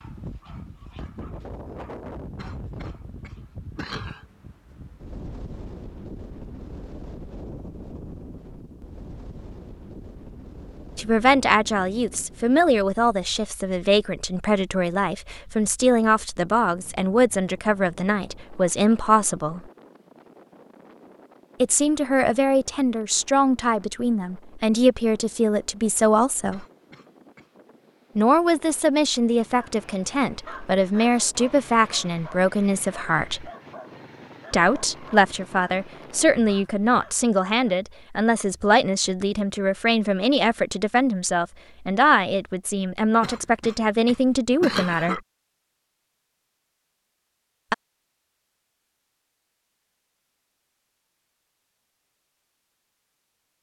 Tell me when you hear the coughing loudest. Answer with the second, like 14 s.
45 s.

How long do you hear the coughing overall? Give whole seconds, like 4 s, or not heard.
5 s.